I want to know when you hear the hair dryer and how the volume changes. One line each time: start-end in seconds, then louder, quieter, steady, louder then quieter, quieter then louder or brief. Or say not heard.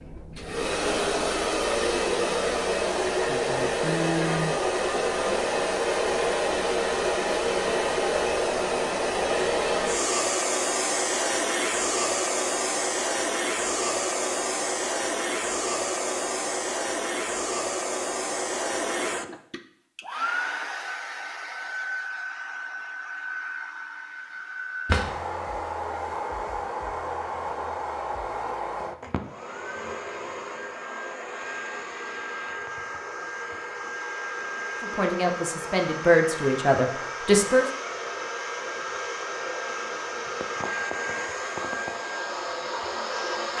0.0-43.5 quieter.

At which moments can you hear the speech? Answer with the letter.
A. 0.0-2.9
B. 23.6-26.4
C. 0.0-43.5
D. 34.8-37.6
D.